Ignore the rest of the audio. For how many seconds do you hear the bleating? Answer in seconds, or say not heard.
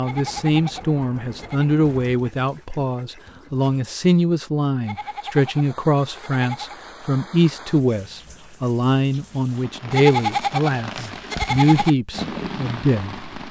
6 s.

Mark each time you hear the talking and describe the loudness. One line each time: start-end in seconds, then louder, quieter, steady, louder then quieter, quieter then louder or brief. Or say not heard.
0.0-13.4 steady.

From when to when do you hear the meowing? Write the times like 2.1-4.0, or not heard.
not heard.